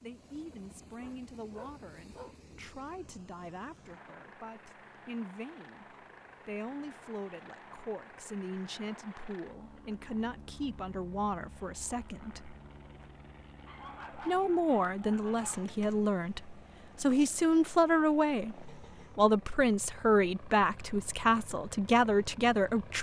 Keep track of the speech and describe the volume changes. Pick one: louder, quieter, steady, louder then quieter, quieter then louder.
louder.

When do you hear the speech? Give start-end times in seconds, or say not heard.
0.0-12.6, 14.2-22.9.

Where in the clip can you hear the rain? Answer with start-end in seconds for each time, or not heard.
not heard.